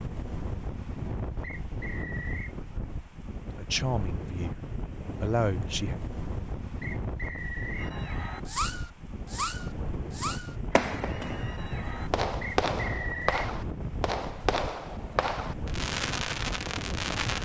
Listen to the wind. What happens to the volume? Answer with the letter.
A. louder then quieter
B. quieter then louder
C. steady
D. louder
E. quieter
C.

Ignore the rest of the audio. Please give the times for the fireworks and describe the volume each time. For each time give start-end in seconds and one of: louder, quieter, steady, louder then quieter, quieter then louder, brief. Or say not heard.
7.8-17.4 steady.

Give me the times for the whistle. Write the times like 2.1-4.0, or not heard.
1.4-2.5, 6.8-7.9, 12.4-13.4.